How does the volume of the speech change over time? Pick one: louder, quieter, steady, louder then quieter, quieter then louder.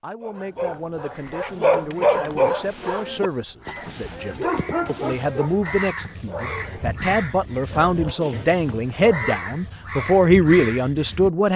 louder.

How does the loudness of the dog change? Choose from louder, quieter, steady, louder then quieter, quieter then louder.
quieter.